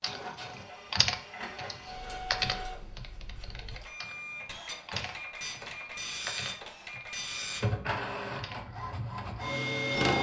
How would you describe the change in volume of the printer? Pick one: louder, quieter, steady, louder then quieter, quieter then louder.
louder.